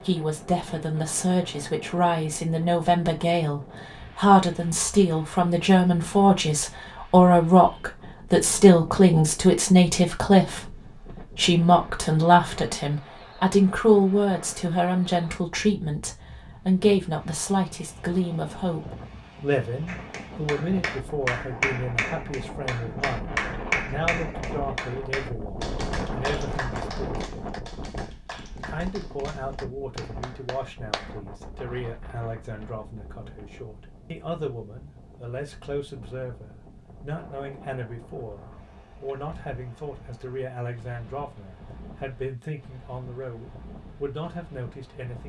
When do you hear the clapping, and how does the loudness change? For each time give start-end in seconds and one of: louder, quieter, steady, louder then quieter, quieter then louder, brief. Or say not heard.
19.9-31.1 quieter.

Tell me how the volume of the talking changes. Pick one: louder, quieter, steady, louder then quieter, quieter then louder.
quieter.